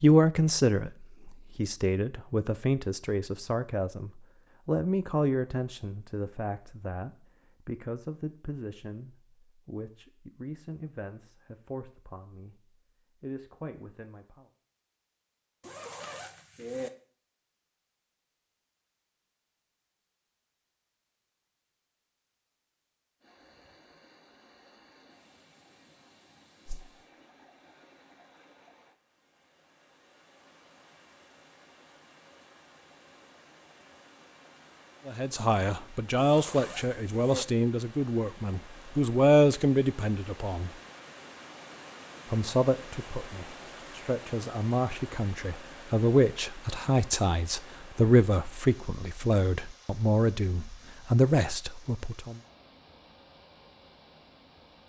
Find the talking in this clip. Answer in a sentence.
You can hear the talking from 0.0 to 14.5 s, from 35.0 to 40.7 s and from 42.2 to 52.4 s.